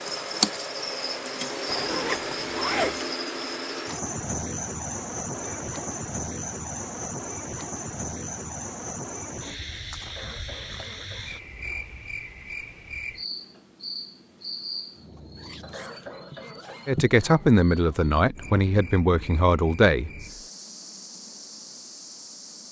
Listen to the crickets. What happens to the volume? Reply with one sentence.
The loudness of the crickets goes down.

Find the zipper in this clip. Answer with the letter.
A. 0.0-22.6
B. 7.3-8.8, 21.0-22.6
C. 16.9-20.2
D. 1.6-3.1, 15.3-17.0
D.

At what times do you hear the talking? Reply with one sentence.
The talking can be heard from 16.9 to 20.2 s.